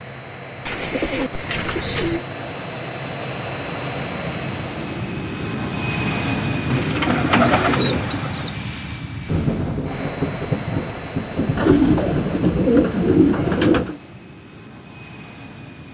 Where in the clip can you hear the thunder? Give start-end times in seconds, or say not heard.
9.2-13.8.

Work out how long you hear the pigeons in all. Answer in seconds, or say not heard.
6 s.